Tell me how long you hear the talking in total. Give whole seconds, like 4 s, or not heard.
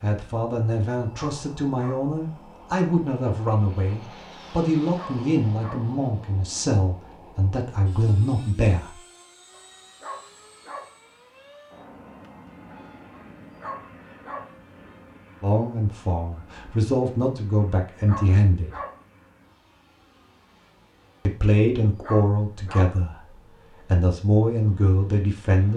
17 s.